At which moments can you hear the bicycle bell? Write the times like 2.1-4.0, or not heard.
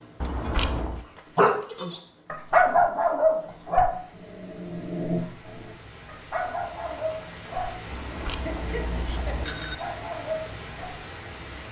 0.2-1.1, 7.9-9.8.